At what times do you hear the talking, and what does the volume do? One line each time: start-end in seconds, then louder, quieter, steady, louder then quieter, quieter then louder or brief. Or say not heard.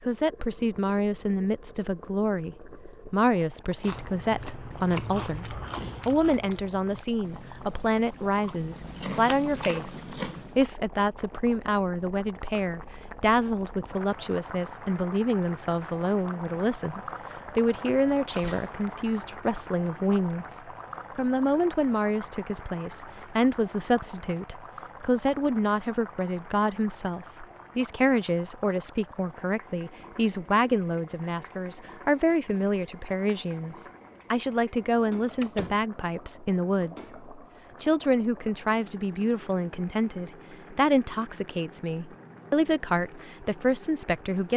0.1-44.5 steady.